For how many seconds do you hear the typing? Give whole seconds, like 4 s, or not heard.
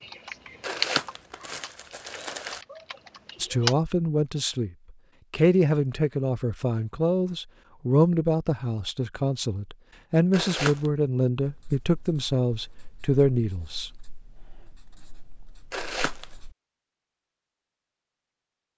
4 s.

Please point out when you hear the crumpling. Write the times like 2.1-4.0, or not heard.
0.6-2.6, 10.3-10.9, 15.7-16.2.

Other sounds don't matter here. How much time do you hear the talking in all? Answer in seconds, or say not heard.
10 s.